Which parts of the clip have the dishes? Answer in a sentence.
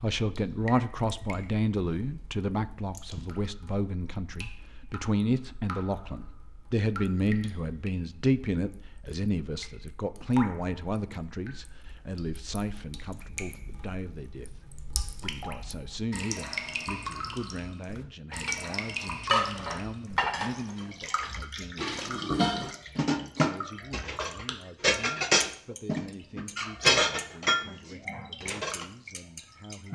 You can hear the dishes from 18.3 to 28.9 s.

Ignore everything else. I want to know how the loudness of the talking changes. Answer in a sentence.
The volume of the talking goes down.